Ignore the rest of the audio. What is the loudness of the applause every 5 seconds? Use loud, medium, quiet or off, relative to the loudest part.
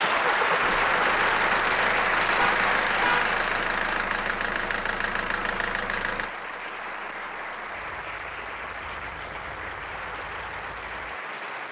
loud, medium, medium.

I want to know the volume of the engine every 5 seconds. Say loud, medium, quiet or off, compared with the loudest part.
loud, medium, quiet.